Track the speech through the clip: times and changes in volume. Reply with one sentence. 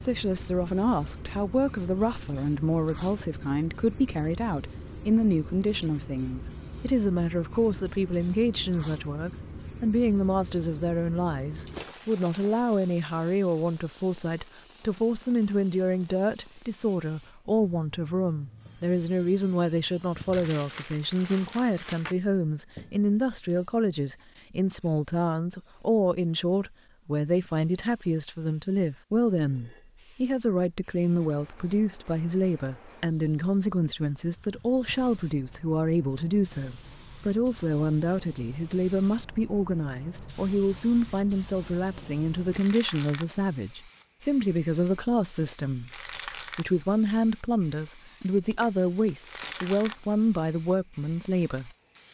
The speech can be heard from 0.0 to 52.0 s, at a steady volume.